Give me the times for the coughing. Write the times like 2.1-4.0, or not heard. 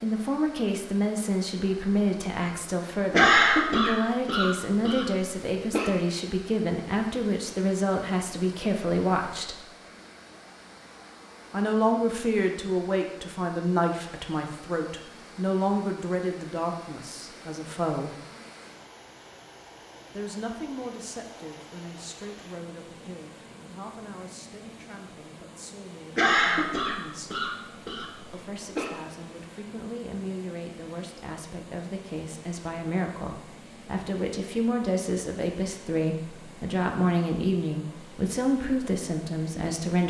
3.1-5.9, 26.1-28.9.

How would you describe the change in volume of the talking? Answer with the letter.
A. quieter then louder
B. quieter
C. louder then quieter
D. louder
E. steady
A.